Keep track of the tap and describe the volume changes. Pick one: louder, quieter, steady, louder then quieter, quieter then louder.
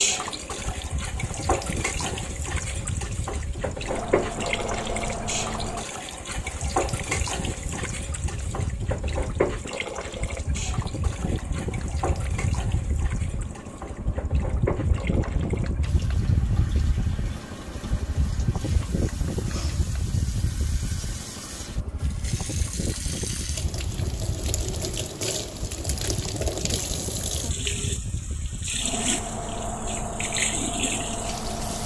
quieter then louder.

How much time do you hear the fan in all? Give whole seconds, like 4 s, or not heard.
32 s.